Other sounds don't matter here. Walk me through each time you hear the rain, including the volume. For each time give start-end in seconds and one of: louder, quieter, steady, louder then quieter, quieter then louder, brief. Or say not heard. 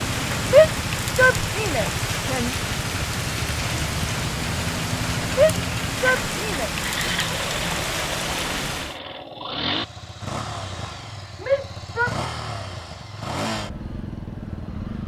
0.0-9.0 steady.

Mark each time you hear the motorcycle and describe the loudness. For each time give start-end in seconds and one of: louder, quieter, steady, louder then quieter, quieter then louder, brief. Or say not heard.
0.1-15.0 steady.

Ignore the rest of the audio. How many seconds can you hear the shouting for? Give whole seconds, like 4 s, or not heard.
4 s.